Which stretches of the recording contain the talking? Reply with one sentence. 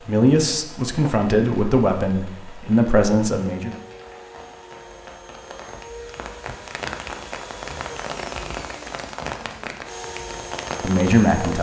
The talking can be heard from 0.1 to 3.8 s and from 10.8 to 11.5 s.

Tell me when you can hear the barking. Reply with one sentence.
The barking can't be heard in this clip.